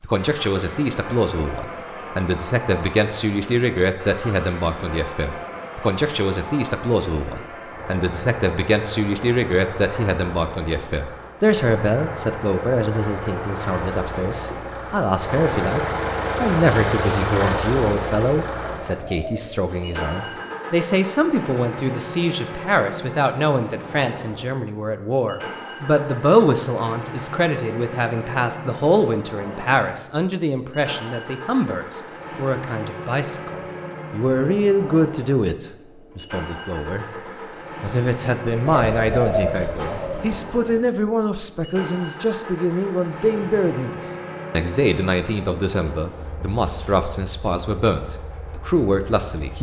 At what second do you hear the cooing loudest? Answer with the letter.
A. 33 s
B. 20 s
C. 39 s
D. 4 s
C.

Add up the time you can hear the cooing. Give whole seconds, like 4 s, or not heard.
3 s.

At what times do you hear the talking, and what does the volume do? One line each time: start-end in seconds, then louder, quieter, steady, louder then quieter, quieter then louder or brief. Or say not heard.
0.0-37.0 steady
37.8-49.5 steady.